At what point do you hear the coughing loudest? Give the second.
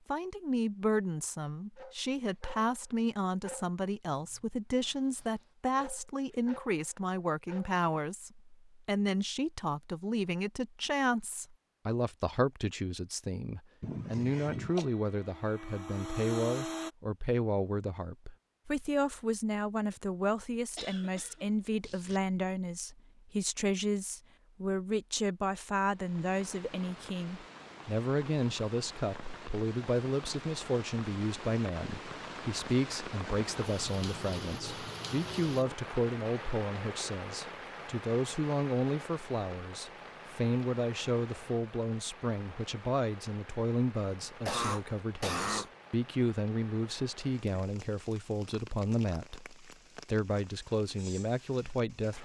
45 s.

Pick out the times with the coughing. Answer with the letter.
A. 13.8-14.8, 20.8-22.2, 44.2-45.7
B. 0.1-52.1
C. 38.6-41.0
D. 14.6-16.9
A.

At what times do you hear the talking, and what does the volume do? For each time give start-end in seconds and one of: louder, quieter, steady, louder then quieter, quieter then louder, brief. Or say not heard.
0.1-52.1 steady.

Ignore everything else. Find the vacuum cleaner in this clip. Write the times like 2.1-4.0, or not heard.
14.6-16.9.